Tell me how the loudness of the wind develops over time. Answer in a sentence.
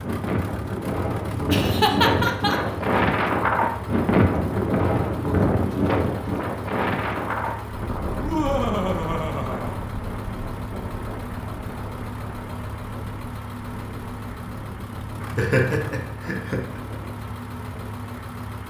The loudness of the wind goes down.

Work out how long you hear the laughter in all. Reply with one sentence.
The laughter can be heard for 4 seconds in total.